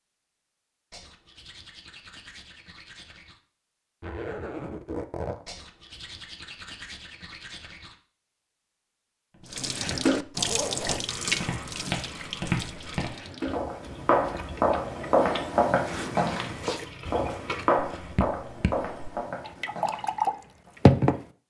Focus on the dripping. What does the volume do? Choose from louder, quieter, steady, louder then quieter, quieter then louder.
quieter then louder.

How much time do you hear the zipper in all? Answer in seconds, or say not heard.
4 s.